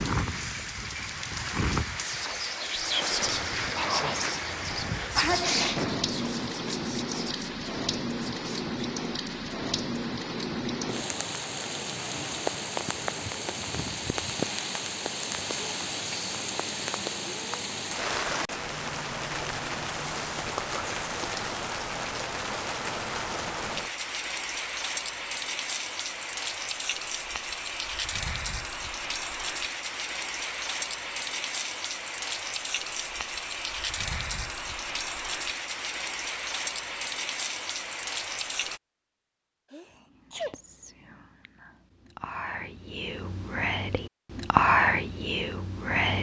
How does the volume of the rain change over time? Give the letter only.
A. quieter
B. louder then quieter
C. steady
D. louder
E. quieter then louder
C.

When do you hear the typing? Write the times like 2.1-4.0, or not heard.
not heard.